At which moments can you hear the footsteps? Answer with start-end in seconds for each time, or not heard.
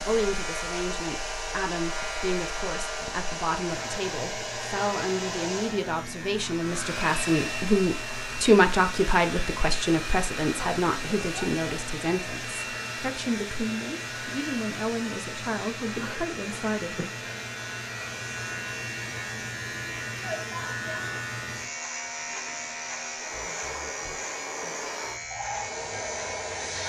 not heard.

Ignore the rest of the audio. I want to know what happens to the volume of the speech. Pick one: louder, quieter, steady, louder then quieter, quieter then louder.
louder then quieter.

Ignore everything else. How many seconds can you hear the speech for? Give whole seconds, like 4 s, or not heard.
17 s.